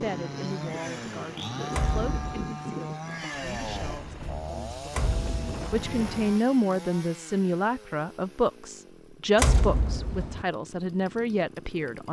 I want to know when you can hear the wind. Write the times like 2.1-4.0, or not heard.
0.0-6.4.